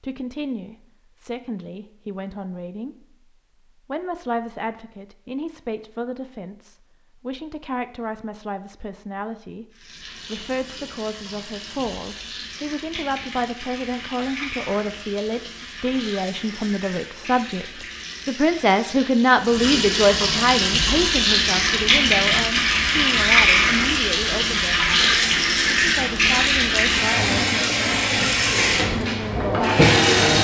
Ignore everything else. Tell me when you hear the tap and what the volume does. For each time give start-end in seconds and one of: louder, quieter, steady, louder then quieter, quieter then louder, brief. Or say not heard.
9.7-30.3 louder.